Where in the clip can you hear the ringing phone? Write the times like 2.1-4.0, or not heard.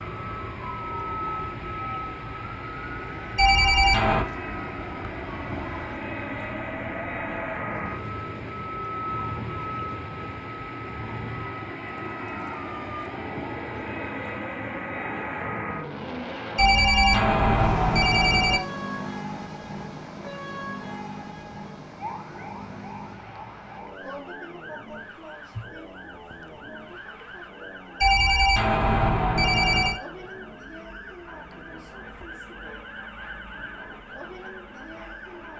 3.4-4.2, 16.6-18.6, 28.0-30.0.